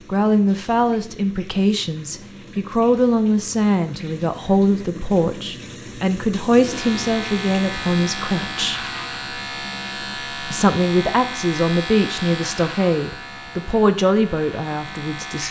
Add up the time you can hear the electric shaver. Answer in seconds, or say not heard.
9 s.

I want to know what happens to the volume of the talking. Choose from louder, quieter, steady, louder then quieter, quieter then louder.
steady.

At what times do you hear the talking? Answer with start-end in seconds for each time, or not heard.
0.1-8.8, 10.5-15.4.